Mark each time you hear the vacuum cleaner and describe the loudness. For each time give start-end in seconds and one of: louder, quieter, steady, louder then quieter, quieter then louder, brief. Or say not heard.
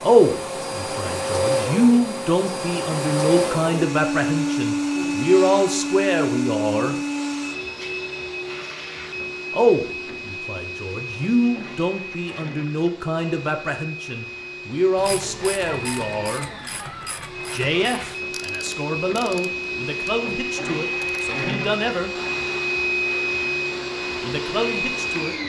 0.0-25.4 quieter then louder.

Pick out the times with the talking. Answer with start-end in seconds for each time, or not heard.
0.0-7.0, 9.5-16.4, 17.5-22.1, 24.2-25.4.